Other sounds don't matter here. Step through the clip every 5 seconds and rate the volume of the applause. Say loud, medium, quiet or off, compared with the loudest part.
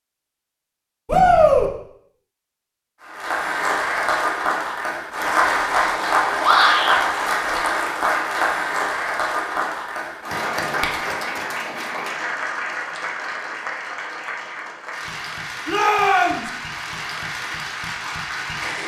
loud, loud, medium, medium.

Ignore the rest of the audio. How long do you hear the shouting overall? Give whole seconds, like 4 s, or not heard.
2 s.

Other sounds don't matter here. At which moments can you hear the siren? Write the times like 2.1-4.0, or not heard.
not heard.